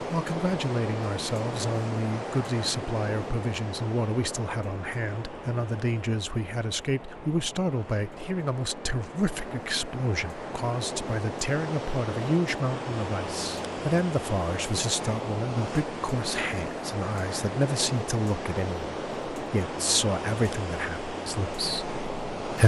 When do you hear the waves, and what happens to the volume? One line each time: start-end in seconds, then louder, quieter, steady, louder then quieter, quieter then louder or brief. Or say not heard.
0.0-22.6 quieter then louder.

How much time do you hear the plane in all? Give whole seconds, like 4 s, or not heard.
not heard.